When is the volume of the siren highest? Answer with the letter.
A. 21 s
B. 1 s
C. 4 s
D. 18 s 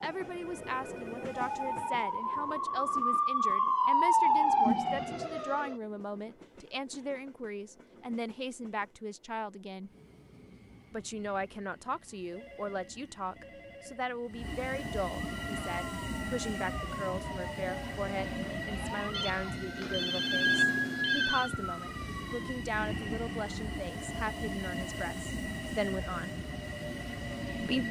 C.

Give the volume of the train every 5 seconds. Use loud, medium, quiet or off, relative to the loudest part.
medium, quiet, medium, loud, loud, loud.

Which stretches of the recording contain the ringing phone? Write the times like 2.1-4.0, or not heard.
0.2-1.9, 12.3-14.1, 19.1-21.6.